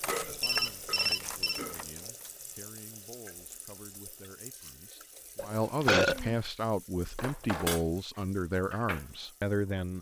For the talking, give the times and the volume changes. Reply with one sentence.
You can hear the talking from 0.1 to 9.9 s, getting louder.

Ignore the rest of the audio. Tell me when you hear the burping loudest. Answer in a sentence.
The volume of the burping peaks at 6 seconds.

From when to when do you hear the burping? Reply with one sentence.
You can hear the burping from 0.1 to 1.8 s and from 5.3 to 6.3 s.